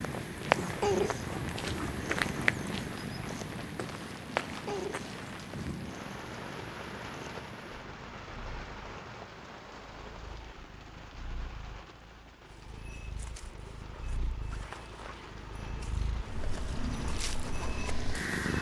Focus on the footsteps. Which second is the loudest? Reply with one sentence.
The volume of the footsteps peaks at 2 seconds.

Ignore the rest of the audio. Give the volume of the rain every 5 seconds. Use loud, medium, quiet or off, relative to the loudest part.
loud, loud, medium, medium.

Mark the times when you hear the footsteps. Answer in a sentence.
You can hear the footsteps from 0.0 to 5.8 s and from 12.7 to 18.4 s.